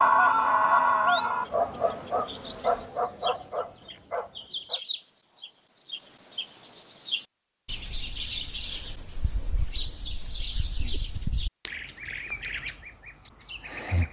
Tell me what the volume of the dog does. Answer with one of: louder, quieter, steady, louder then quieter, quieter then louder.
quieter.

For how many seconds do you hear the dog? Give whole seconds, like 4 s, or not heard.
5 s.